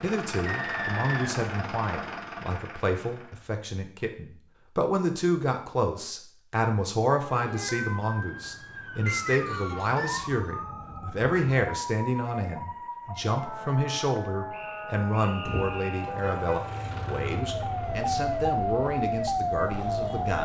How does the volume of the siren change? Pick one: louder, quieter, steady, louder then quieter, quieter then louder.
louder.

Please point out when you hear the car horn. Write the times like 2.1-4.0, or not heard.
15.4-16.6.